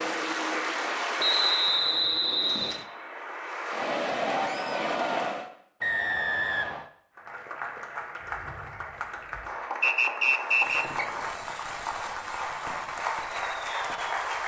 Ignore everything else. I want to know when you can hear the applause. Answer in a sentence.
You can hear the applause from 0.0 to 5.5 s and from 7.2 to 14.4 s.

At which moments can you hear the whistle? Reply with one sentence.
You can hear the whistle from 1.1 to 2.9 s, from 5.8 to 6.8 s and from 9.8 to 11.1 s.